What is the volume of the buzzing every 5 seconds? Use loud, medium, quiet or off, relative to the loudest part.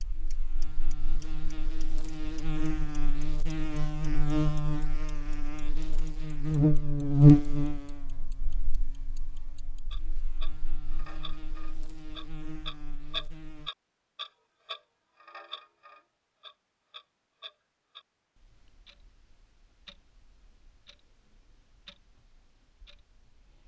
medium, loud, quiet, off, off.